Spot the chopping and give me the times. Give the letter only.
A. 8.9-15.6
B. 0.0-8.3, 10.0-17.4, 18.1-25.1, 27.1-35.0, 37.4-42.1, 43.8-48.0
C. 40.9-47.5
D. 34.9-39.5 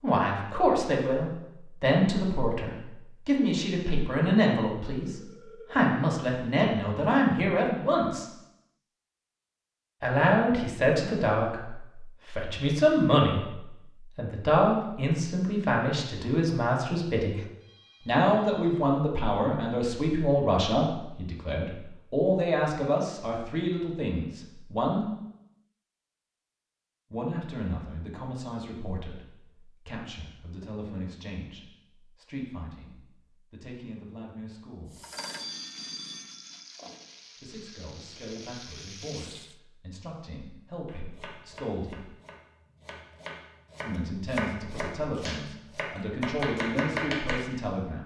C.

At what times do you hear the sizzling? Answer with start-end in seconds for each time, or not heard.
34.9-39.5.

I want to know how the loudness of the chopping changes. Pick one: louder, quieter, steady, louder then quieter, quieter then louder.
louder.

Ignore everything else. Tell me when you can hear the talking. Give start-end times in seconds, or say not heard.
0.0-8.3, 10.0-17.4, 18.1-25.1, 27.1-35.0, 37.4-42.1, 43.8-48.0.